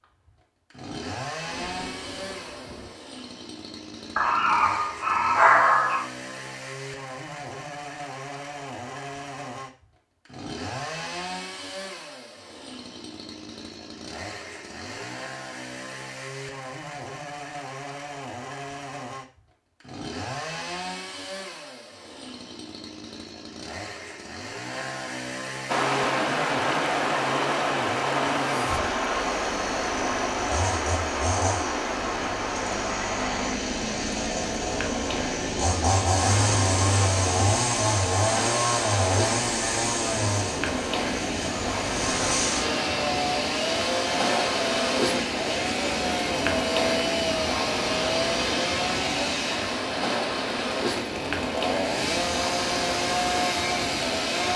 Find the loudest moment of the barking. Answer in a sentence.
The volume of the barking peaks at 6 seconds.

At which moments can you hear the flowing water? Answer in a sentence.
The flowing water can be heard from 25.6 to 54.5 s.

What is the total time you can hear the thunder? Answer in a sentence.
The thunder can be heard for 3 seconds in total.